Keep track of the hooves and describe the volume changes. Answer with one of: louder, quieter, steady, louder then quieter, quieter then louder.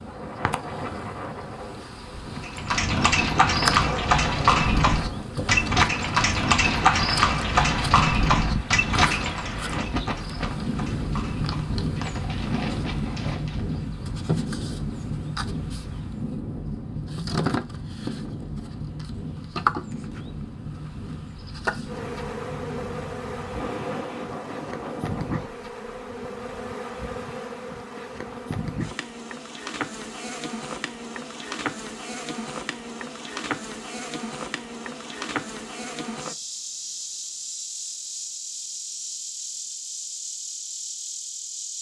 quieter.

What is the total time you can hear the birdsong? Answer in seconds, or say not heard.
not heard.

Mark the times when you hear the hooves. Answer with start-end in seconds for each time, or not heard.
2.4-13.8.